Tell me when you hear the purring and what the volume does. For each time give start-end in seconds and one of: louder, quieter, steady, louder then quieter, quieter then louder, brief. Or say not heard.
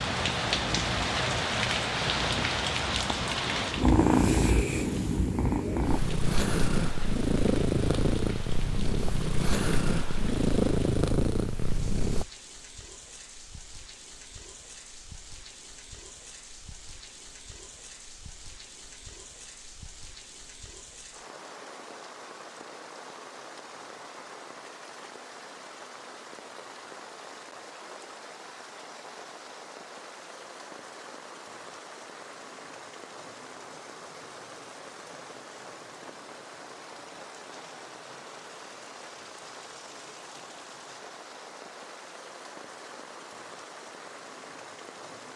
0.0-12.2 louder.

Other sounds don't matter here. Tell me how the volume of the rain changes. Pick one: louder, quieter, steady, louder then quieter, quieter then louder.
quieter.